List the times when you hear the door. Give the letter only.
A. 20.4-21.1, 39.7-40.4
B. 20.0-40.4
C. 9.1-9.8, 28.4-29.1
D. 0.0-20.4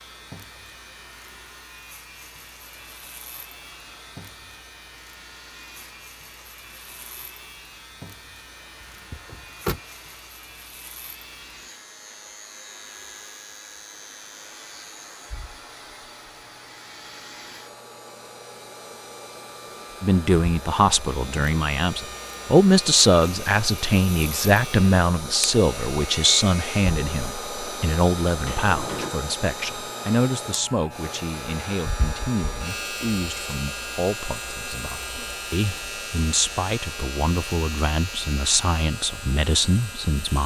C.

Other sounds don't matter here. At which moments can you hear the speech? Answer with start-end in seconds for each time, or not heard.
20.0-40.4.